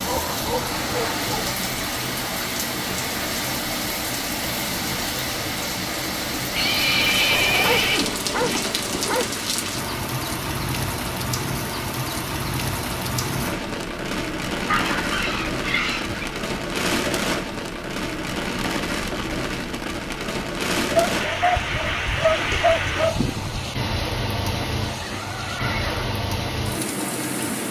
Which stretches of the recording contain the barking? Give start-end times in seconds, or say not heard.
0.0-1.6, 7.3-9.3, 14.7-16.2, 20.9-23.6.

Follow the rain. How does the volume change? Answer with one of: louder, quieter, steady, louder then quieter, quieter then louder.
steady.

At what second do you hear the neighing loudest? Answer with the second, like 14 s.
7 s.